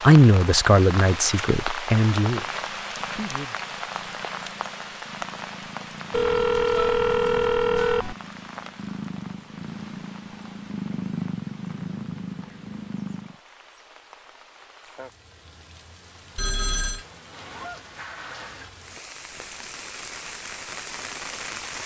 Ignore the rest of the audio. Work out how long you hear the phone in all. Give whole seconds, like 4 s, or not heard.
3 s.